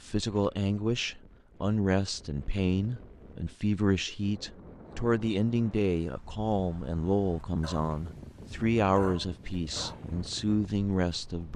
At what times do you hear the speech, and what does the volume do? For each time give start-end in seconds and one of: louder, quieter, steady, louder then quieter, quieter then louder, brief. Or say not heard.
0.0-11.5 steady.